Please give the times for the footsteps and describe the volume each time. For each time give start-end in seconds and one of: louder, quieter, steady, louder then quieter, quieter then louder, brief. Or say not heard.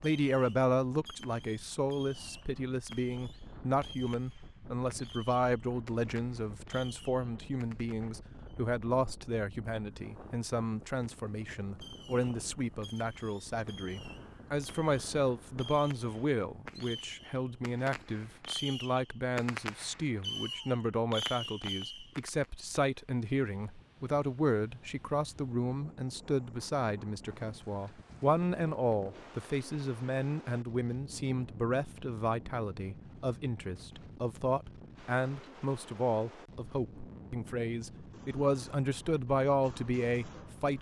not heard.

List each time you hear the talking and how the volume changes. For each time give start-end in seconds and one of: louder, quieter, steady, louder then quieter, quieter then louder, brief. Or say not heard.
0.0-40.7 steady.